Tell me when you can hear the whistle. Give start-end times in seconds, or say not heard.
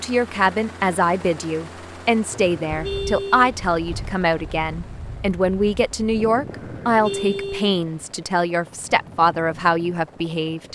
not heard.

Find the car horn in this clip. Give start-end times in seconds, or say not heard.
2.2-3.6, 6.5-7.8.